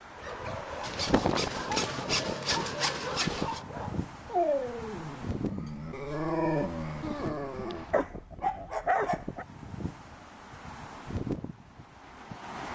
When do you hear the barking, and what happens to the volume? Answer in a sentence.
The barking can be heard from 0.1 to 9.4 s, getting louder.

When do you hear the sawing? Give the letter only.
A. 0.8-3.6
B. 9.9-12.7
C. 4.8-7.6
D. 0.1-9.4
A.